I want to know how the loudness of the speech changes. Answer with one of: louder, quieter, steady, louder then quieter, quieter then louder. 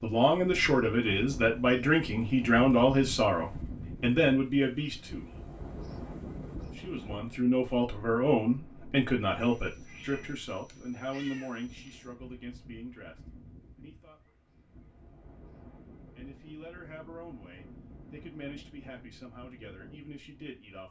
quieter.